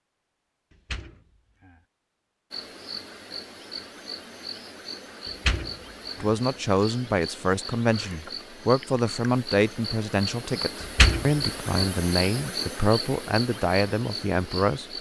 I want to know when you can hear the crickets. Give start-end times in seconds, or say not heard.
2.5-14.9.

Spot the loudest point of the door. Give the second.
11 s.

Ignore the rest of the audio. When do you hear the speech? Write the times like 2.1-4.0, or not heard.
6.2-14.8.